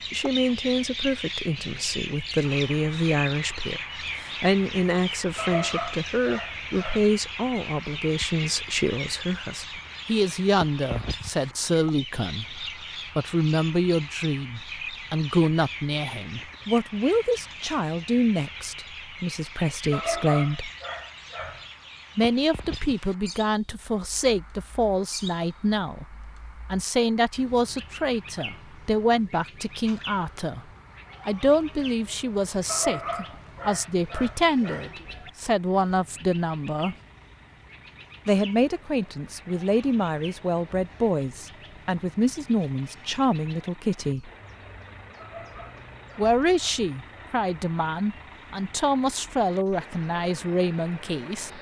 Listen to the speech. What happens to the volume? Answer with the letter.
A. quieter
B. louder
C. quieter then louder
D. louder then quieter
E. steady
E.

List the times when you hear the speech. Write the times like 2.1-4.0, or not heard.
0.1-20.7, 22.1-30.6, 31.2-37.0, 38.2-44.3, 46.1-51.5.